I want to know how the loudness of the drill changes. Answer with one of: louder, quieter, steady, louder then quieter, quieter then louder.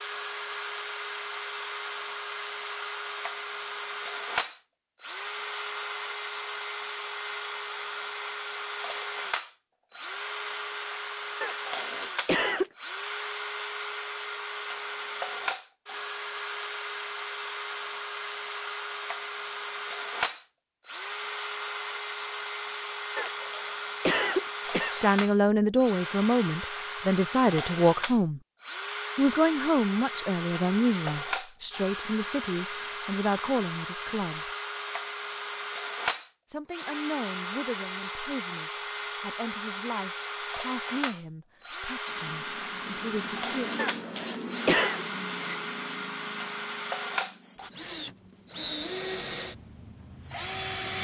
steady.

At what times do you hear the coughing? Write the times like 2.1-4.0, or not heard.
11.4-12.7, 23.1-25.1, 43.8-45.0.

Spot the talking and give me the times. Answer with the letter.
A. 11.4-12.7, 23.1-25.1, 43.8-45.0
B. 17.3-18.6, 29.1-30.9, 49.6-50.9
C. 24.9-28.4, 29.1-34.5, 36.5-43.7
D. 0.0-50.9
C.